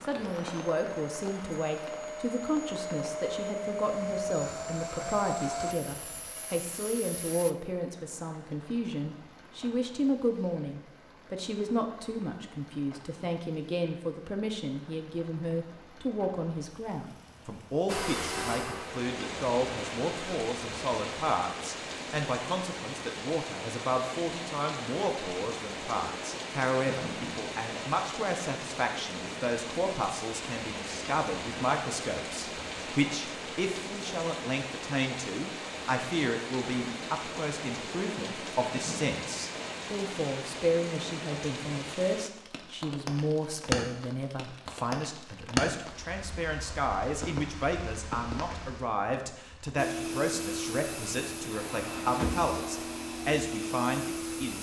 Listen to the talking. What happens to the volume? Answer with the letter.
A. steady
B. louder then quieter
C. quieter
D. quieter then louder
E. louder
A.